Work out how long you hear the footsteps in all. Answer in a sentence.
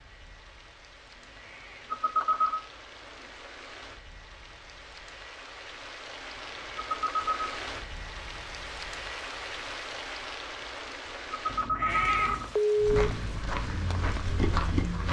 You can hear the footsteps for 2 seconds altogether.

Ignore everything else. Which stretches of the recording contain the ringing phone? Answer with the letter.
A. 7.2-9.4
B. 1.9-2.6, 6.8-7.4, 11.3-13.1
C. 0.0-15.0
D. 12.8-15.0
B.